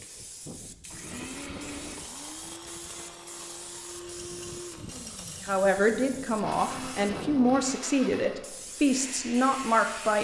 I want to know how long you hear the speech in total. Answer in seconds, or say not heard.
5 s.